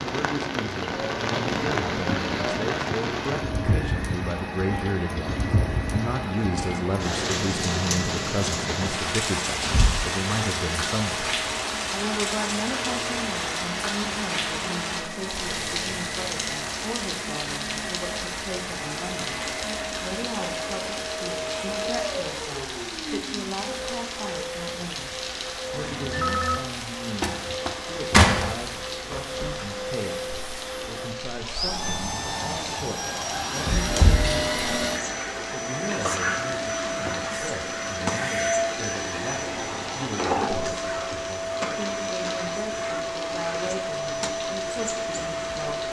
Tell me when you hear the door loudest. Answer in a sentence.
The loudest moment of the door is at 28 seconds.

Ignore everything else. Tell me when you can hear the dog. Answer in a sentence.
The dog can't be heard in this clip.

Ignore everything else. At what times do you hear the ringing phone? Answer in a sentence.
You can hear the ringing phone from 25.8 to 26.6 s.